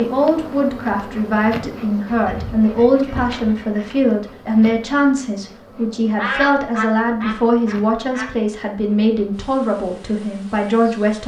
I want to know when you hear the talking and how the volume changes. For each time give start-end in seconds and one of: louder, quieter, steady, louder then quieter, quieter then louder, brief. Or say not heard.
0.0-11.2 steady.